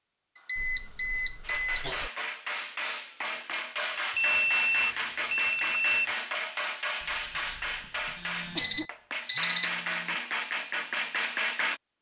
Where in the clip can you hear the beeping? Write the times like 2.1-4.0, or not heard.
0.3-1.9, 4.2-6.1, 8.2-10.2.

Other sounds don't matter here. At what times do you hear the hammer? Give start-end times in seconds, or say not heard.
1.4-11.8.